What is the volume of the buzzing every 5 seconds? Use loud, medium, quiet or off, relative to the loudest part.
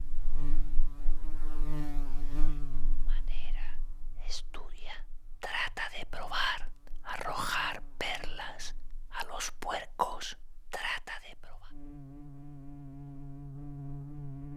loud, quiet, loud.